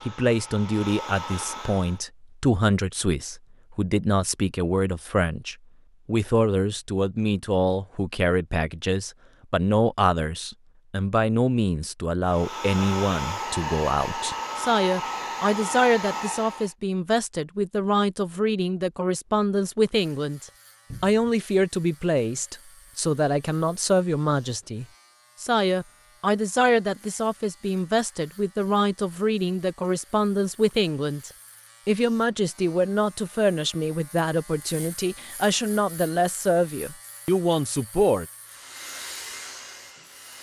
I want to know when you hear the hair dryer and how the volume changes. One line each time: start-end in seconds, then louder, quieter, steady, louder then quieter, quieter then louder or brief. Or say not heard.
0.0-2.0 brief
12.2-16.8 steady
38.5-40.3 brief.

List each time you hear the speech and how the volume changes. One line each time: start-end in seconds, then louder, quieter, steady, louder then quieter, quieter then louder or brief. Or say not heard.
0.1-38.2 steady.